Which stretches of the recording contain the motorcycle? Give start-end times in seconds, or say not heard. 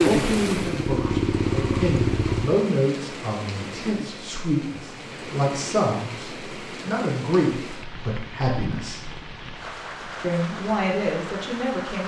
0.2-2.5.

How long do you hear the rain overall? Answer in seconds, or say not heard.
12 s.